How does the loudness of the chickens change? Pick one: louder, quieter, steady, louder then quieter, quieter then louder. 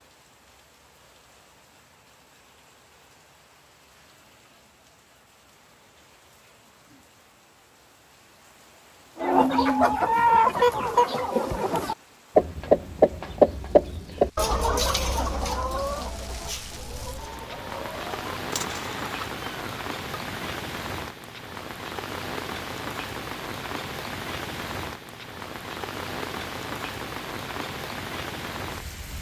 quieter.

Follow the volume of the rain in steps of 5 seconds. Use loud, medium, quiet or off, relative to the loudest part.
quiet, quiet, quiet, loud, loud, loud.